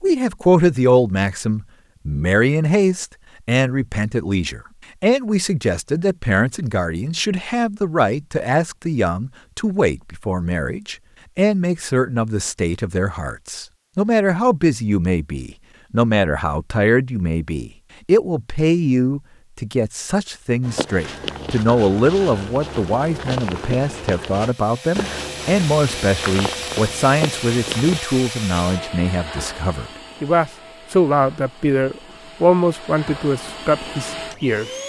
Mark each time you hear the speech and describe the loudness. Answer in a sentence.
The speech can be heard from 0.0 to 34.8 s, at a steady volume.